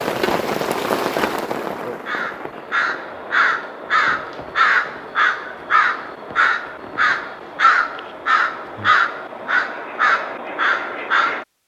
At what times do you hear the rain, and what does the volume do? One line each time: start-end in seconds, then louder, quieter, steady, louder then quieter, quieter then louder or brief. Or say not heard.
0.0-9.7 quieter.